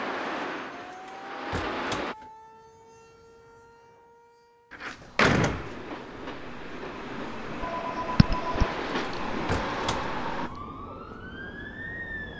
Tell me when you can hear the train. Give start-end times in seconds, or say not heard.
0.0-2.1, 5.5-10.5.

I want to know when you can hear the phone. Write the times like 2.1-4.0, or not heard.
7.6-9.2.